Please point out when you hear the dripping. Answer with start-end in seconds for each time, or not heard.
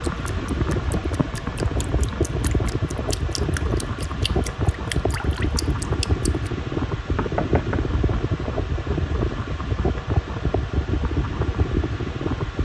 0.0-6.5.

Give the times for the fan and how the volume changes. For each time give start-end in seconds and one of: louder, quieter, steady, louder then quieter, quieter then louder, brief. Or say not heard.
0.0-12.6 steady.